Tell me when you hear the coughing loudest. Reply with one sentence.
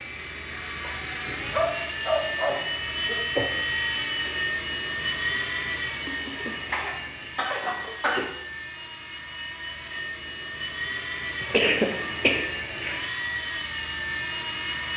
The volume of the coughing peaks at 12 seconds.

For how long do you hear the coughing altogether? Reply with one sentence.
You can hear the coughing for 5 seconds altogether.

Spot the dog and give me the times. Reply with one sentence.
The dog can be heard from 0.8 to 2.6 s.